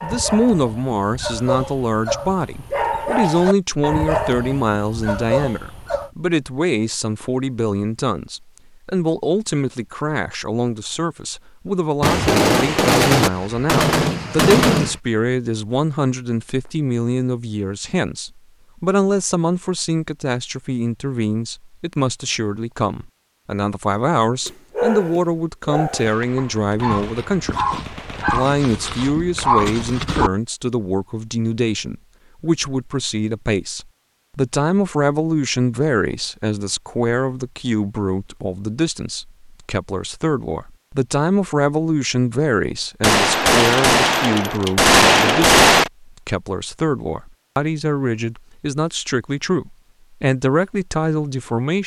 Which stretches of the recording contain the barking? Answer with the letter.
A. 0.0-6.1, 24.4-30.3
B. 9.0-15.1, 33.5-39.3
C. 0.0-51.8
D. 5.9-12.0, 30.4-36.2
A.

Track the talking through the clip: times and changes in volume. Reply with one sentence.
The talking can be heard from 0.0 to 51.8 s, at a steady volume.